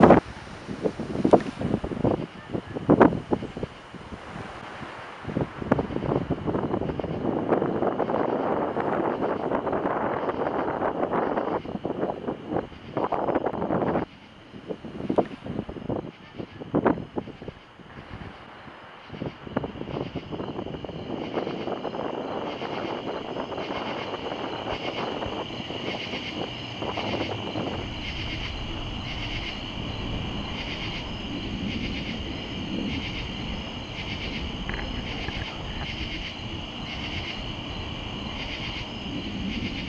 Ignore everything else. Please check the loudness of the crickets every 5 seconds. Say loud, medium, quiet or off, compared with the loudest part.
quiet, quiet, quiet, quiet, medium, loud, loud, loud.